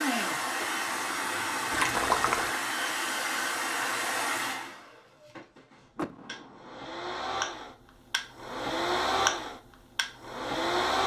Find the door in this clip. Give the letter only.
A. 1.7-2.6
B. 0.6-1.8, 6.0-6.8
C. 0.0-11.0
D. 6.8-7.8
B.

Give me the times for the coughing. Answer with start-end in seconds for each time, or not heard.
not heard.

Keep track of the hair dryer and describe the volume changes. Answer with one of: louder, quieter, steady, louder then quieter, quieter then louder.
quieter then louder.